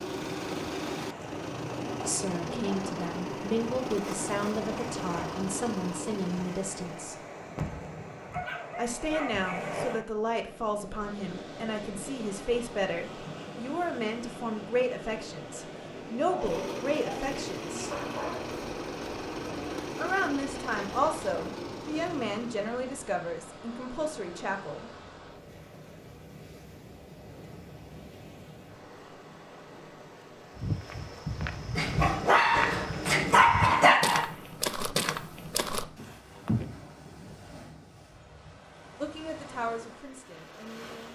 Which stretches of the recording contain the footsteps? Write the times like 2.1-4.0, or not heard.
30.6-36.8.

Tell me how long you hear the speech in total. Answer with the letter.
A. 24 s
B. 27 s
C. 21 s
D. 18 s
C.